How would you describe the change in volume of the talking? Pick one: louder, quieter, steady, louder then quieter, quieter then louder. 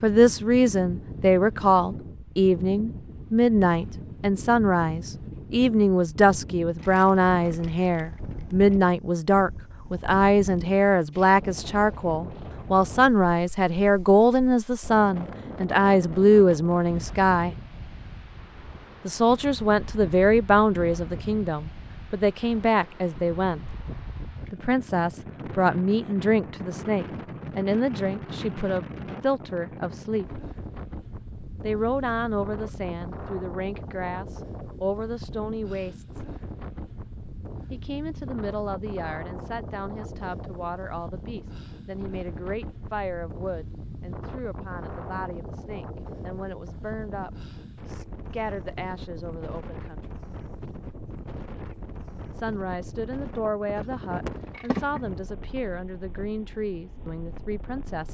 quieter.